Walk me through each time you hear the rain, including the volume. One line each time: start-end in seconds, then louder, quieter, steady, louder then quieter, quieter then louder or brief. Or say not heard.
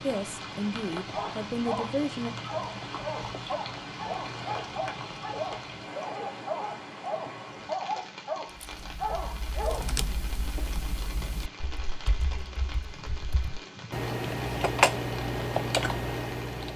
0.0-16.7 quieter.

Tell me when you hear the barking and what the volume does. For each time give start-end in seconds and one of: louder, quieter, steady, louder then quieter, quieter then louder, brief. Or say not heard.
1.1-9.9 steady.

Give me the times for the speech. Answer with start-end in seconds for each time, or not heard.
0.0-2.3.